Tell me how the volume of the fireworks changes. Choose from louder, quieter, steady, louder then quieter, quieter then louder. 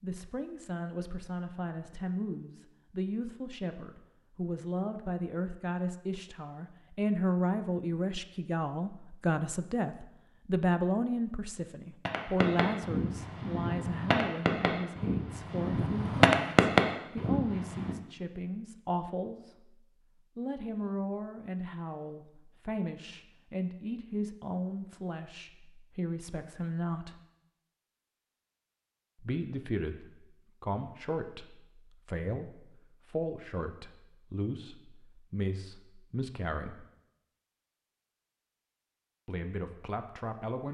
louder.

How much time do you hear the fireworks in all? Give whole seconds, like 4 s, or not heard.
6 s.